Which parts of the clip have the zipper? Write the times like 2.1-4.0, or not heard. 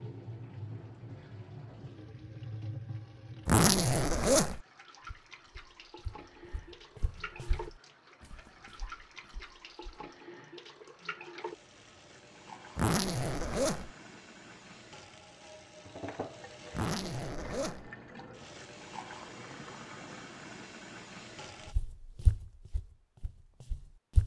3.5-4.6, 12.8-13.9, 16.7-17.9.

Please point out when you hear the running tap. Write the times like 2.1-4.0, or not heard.
0.0-21.8.